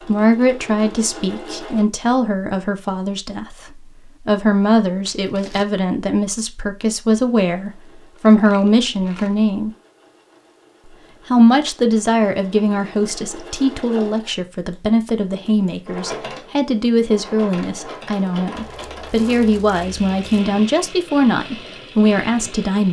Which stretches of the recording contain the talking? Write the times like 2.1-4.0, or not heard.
0.1-9.7, 11.2-22.8.